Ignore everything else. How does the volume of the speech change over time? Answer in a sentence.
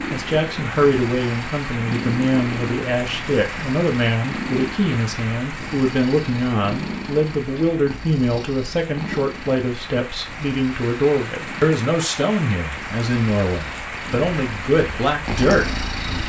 The loudness of the speech stays about the same.